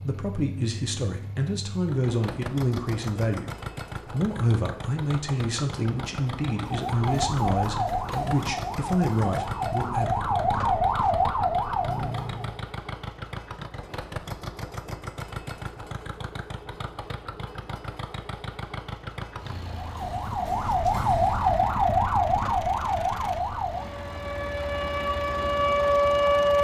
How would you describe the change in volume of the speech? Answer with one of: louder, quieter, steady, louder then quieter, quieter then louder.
steady.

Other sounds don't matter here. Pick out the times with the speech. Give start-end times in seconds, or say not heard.
0.0-3.5, 4.1-10.2.